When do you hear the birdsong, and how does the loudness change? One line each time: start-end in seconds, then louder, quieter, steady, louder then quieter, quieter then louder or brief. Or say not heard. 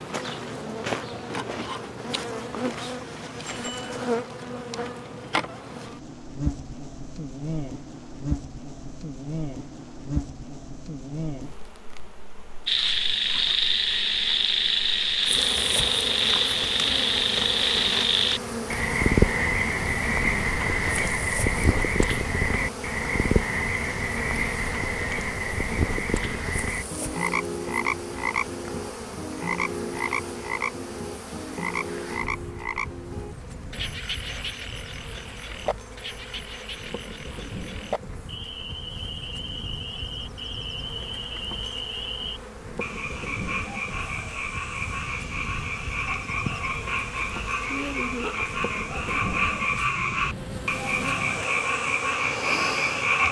not heard.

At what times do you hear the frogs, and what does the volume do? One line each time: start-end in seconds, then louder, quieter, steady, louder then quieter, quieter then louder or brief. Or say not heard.
12.7-53.2 quieter then louder.